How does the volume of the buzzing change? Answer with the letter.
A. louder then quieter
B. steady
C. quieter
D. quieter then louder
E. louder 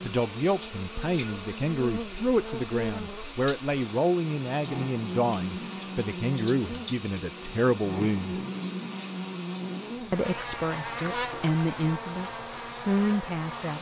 B.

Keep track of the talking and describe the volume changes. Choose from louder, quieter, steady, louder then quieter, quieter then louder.
steady.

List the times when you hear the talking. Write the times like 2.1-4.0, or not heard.
0.0-8.4, 10.1-13.7.